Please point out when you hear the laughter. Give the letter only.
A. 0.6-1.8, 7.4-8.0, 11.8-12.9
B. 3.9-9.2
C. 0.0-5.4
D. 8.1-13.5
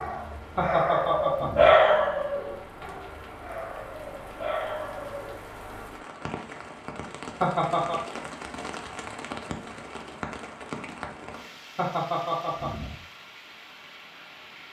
A.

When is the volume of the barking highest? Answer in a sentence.
The loudest moment of the barking is at 2 seconds.